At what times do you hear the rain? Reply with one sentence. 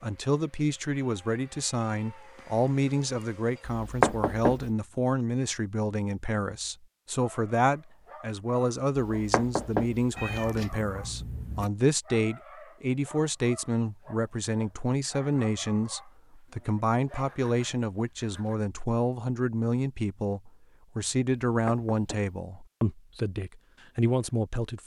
The rain can't be heard in this clip.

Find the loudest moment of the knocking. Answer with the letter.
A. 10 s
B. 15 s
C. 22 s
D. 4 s
D.